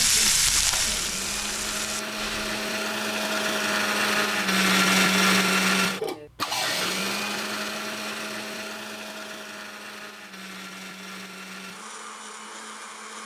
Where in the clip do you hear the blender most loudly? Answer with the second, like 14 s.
5 s.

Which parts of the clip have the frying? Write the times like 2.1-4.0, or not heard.
0.0-2.5.